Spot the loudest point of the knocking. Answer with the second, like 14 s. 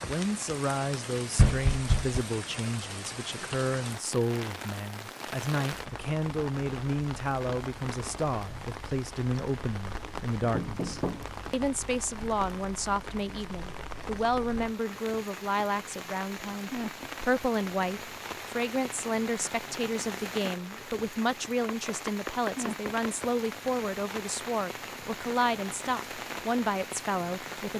2 s.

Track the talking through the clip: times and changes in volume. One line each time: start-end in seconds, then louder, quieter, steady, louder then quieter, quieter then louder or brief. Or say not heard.
0.0-27.7 steady.